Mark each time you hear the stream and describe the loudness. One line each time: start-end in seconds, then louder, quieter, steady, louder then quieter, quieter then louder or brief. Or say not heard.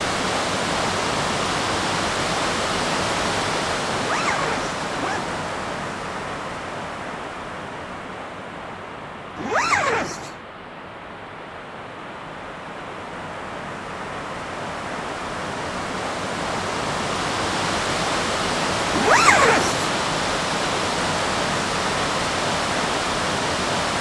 0.0-23.9 quieter then louder.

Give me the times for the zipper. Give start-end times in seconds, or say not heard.
3.9-5.4, 9.3-10.3, 18.9-19.9.